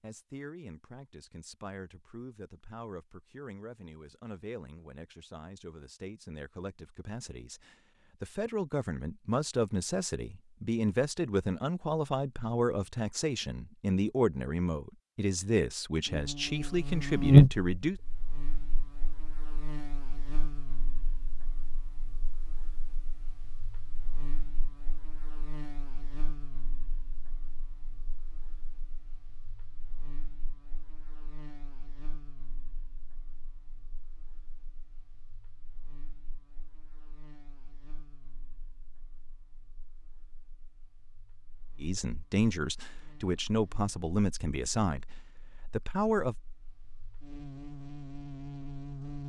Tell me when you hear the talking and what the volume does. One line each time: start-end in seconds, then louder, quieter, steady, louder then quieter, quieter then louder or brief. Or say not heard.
0.0-18.0 louder
41.8-46.4 quieter.